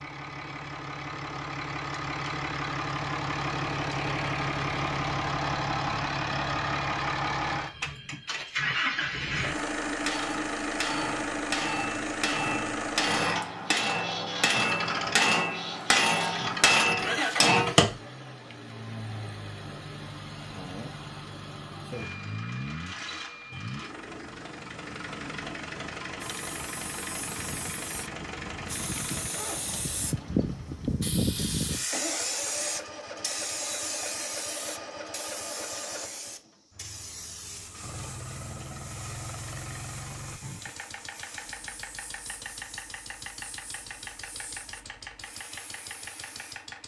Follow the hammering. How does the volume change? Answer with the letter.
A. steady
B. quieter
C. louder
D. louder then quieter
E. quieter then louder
C.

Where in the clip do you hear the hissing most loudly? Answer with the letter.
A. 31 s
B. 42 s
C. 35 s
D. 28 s
A.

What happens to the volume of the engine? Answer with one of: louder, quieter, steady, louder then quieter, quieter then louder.
quieter.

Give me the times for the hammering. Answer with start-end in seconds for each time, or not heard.
9.6-17.9.